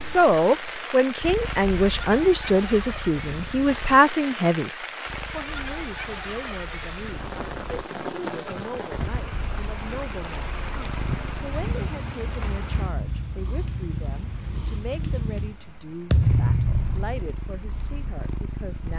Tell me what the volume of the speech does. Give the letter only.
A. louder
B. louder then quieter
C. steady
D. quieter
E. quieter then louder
D.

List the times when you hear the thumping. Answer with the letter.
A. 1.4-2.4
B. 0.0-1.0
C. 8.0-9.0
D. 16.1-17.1
D.